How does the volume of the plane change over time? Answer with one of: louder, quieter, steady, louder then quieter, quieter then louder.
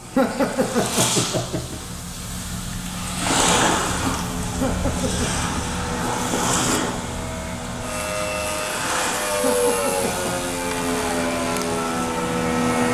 louder.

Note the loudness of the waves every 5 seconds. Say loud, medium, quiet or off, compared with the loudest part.
loud, loud, medium.